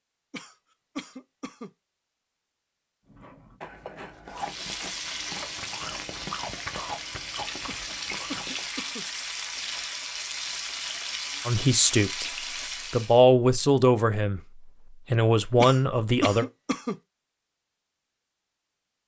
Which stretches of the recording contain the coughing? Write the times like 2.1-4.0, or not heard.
0.3-1.7, 7.7-9.1, 15.6-16.9.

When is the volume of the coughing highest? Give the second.
16 s.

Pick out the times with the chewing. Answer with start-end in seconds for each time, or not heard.
3.0-8.7.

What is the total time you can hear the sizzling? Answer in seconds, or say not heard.
9 s.